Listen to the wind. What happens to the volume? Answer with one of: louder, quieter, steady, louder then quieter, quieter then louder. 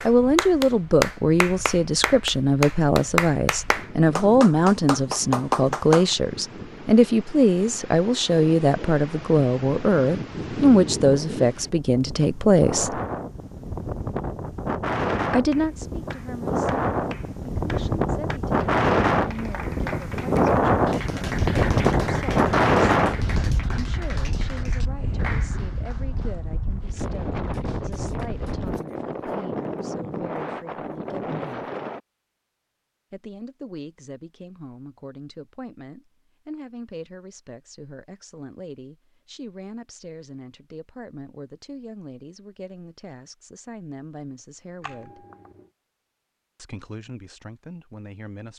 louder then quieter.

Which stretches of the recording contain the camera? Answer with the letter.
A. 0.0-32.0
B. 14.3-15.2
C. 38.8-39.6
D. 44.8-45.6
D.